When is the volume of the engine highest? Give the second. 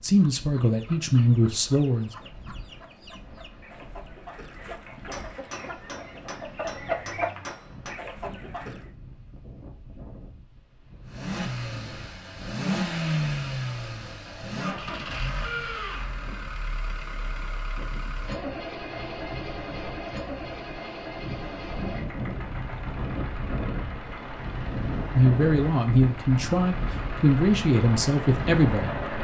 13 s.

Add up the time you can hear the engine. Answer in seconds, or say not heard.
18 s.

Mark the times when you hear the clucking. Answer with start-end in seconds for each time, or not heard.
0.2-8.9.